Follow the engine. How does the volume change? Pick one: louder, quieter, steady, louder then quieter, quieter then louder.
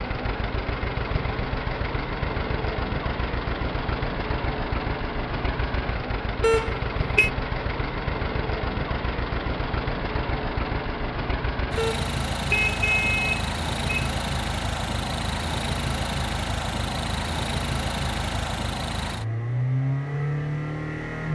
steady.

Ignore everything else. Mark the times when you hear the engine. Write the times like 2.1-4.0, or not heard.
0.0-21.2.